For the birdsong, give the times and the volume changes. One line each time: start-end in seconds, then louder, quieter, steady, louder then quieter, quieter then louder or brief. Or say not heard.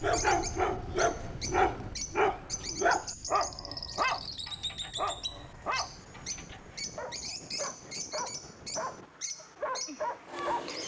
0.0-10.8 steady.